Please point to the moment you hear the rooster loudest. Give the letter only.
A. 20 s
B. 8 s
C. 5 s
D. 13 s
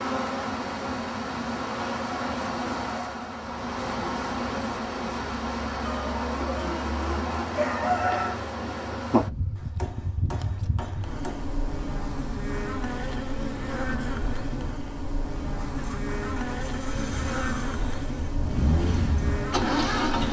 B.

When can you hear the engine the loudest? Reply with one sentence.
The loudest moment of the engine is at 20 seconds.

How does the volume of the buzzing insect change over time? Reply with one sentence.
The volume of the buzzing insect stays about the same.